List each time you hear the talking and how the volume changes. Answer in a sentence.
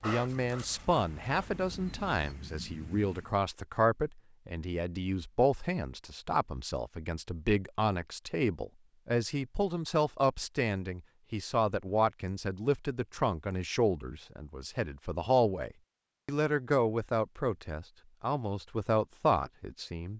You can hear the talking from 0.0 to 20.1 s, at a steady volume.